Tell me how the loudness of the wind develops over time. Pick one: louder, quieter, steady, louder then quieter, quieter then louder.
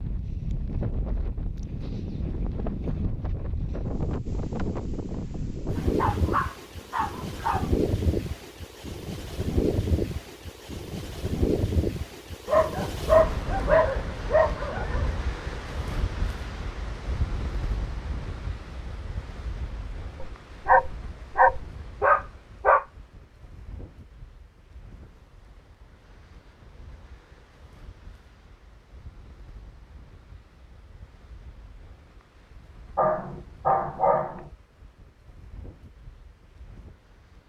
quieter.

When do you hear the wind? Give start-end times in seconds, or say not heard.
0.0-37.4.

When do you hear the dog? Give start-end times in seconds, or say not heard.
5.8-7.7, 12.4-15.2, 20.2-22.9, 33.0-34.5.